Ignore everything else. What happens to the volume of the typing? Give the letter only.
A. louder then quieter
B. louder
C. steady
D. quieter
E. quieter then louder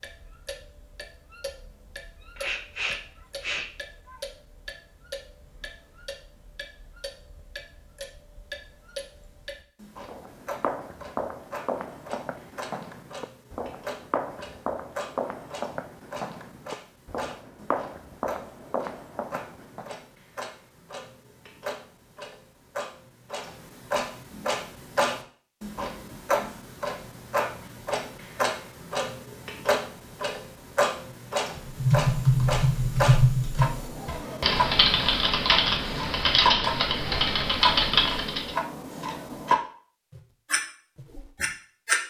C.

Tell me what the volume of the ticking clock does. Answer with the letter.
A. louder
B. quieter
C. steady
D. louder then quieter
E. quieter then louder
A.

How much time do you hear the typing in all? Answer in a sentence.
The typing can be heard for 7 seconds in total.